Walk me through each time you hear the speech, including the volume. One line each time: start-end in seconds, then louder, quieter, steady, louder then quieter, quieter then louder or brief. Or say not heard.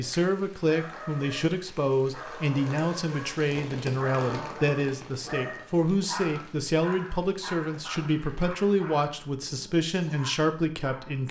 0.0-11.2 steady.